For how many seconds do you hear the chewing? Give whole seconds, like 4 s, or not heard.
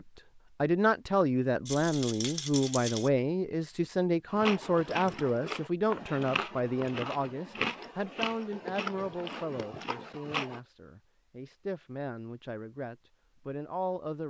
6 s.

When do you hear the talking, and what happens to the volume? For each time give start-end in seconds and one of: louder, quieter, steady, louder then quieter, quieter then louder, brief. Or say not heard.
0.1-14.2 quieter.